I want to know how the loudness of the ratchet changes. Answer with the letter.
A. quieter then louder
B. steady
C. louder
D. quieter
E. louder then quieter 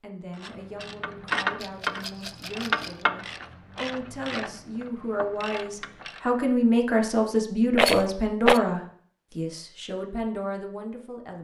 D.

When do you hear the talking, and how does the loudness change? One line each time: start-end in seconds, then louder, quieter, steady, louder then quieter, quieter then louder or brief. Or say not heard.
0.0-11.4 louder then quieter.